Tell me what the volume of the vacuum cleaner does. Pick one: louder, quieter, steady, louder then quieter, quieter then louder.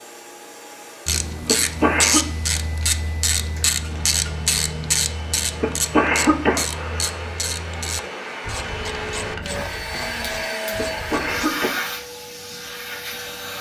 louder.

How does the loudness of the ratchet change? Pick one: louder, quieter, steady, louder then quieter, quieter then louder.
quieter.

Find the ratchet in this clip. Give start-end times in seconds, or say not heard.
1.1-11.5.